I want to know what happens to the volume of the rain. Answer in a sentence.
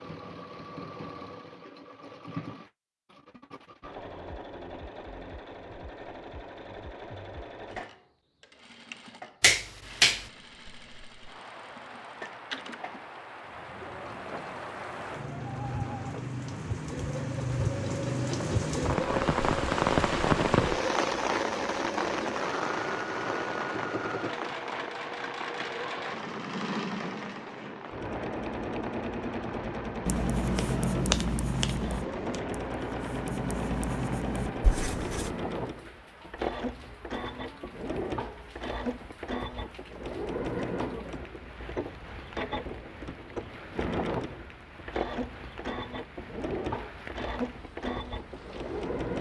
The volume of the rain goes up, then down.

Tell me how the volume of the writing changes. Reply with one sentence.
The volume of the writing goes down, then up.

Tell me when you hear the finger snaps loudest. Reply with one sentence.
The loudest moment of the finger snaps is at 10 seconds.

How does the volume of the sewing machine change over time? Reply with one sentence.
The volume of the sewing machine goes up.